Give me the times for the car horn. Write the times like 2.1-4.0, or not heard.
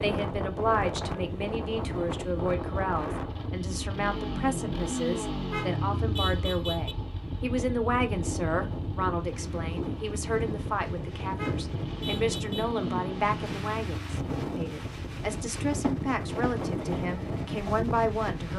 5.4-7.0, 11.3-12.7.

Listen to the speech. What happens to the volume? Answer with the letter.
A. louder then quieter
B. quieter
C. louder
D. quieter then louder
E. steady
E.